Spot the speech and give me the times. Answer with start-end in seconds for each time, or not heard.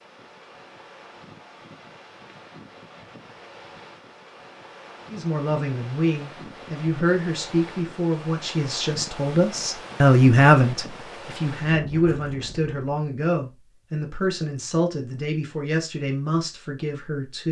5.1-17.4.